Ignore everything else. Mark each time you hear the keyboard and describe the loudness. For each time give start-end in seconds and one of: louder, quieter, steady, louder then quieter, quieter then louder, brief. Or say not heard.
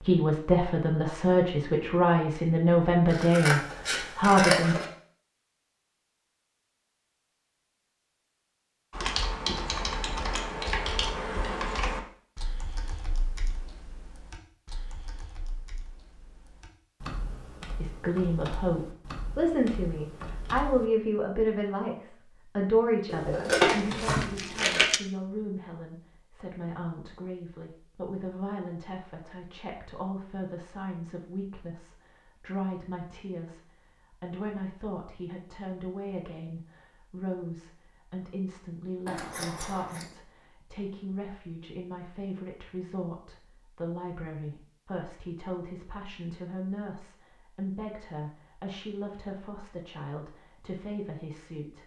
8.9-20.9 quieter then louder.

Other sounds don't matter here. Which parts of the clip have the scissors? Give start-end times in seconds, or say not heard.
3.1-4.8, 23.1-24.9, 39.0-40.0.